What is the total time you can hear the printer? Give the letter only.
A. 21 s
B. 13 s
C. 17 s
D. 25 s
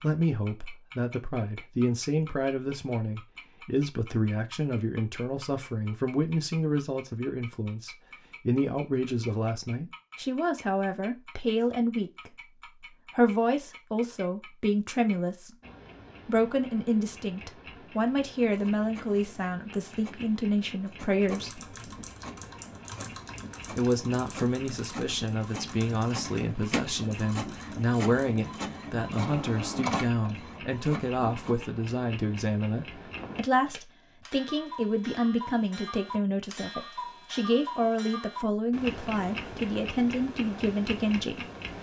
B.